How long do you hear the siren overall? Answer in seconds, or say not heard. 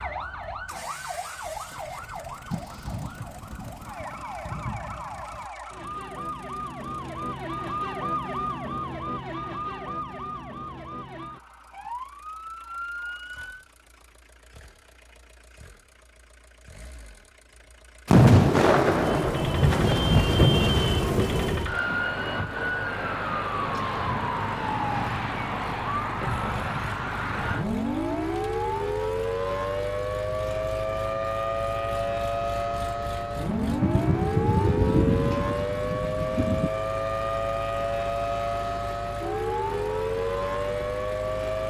36 s.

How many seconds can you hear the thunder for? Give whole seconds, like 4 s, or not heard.
10 s.